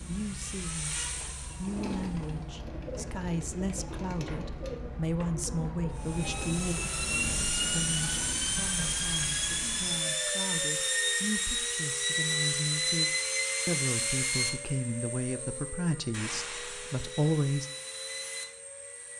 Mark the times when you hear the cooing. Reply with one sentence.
You can hear the cooing from 1.6 to 6.8 s.